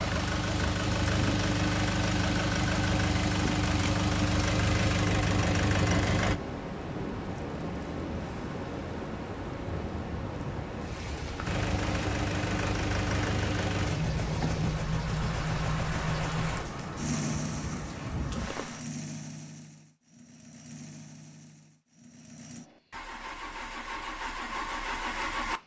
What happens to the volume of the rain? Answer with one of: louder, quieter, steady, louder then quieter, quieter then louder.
steady.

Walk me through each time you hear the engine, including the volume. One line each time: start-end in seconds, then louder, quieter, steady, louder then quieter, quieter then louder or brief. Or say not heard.
0.0-6.3 steady
11.4-25.6 quieter then louder.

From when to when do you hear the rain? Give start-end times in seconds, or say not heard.
0.0-18.9.